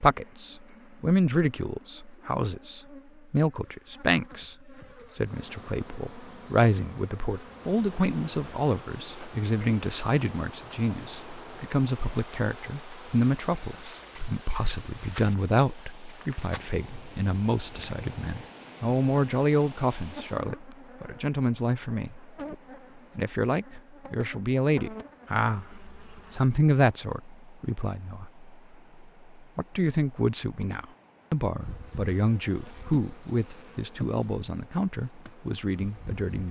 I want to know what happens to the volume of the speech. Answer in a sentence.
The loudness of the speech stays about the same.